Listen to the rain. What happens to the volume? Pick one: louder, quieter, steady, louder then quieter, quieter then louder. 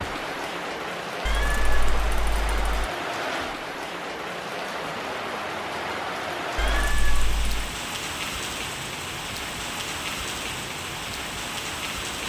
steady.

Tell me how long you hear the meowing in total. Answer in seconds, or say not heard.
3 s.